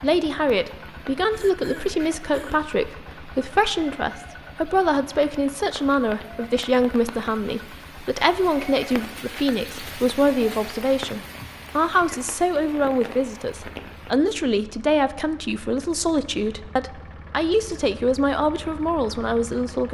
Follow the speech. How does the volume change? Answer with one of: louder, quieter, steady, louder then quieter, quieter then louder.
steady.